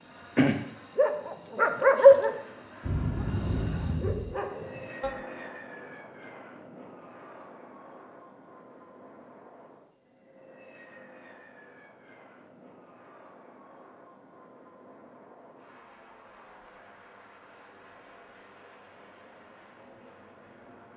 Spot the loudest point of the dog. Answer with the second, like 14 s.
2 s.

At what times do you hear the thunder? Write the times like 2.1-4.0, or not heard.
2.8-4.3.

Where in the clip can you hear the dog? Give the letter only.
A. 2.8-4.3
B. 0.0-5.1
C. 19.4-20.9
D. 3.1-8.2
B.